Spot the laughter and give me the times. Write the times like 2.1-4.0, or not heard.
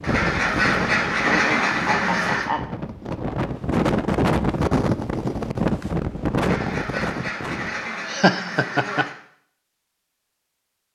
1.1-2.6, 8.1-9.1.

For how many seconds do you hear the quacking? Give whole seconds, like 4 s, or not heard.
5 s.